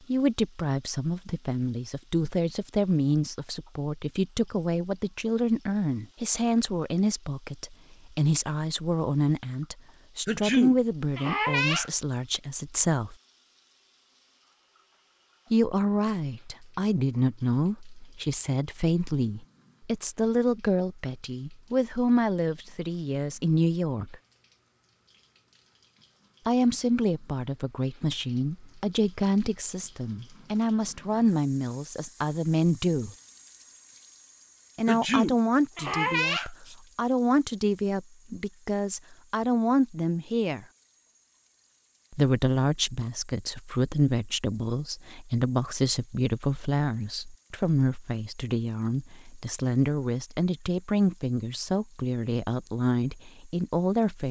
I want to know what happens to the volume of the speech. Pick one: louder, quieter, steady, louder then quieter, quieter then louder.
steady.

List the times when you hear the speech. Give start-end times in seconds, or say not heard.
0.1-13.2, 15.5-24.2, 26.4-33.1, 34.8-40.6, 42.1-54.2.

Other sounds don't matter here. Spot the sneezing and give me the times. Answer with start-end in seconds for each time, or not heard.
10.2-11.9, 34.9-36.8.